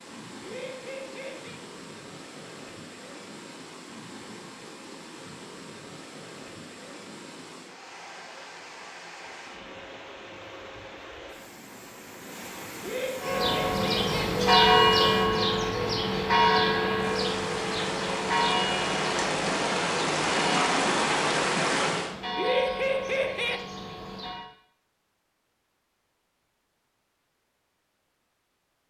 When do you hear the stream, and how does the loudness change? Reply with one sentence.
The stream can be heard from 0.0 to 22.1 s, getting louder.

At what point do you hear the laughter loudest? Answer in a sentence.
The volume of the laughter peaks at 23 seconds.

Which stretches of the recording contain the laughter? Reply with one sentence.
You can hear the laughter from 0.4 to 1.6 s, from 12.8 to 14.3 s and from 22.4 to 23.6 s.